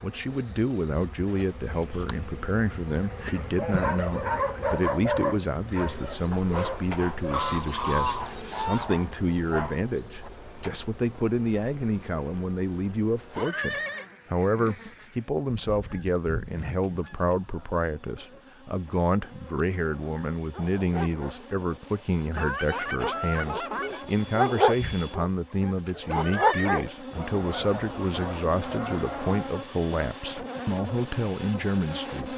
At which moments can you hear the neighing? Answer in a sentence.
You can hear the neighing from 13.3 to 14.1 s and from 26.1 to 26.9 s.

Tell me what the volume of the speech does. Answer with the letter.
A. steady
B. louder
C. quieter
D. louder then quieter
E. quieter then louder
A.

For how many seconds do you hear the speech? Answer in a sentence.
You can hear the speech for 32 seconds altogether.